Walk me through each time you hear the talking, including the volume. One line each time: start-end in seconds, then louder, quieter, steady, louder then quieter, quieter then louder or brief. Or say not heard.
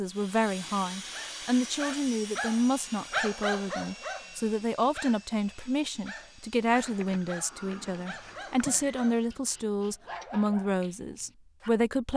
0.0-12.1 steady.